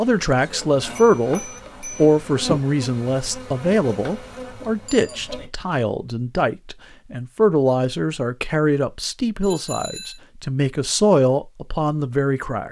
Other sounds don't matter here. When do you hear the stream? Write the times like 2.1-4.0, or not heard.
not heard.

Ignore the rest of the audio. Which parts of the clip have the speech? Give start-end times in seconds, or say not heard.
0.0-12.6.